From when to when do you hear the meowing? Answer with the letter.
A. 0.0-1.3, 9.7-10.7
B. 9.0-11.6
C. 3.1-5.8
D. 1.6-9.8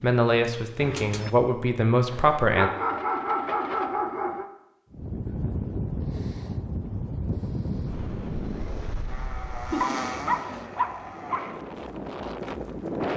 A.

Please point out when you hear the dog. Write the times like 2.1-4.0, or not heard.
2.1-4.5, 9.8-11.4.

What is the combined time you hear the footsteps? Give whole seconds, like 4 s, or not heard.
not heard.